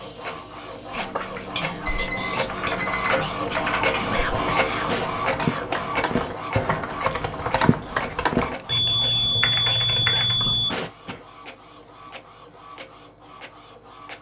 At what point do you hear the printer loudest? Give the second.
4 s.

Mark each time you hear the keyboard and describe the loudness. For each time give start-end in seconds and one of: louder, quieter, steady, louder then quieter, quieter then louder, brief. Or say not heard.
1.1-8.6 louder
9.4-10.3 brief.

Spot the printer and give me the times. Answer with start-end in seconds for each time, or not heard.
0.0-14.1.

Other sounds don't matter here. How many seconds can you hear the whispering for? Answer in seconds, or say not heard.
10 s.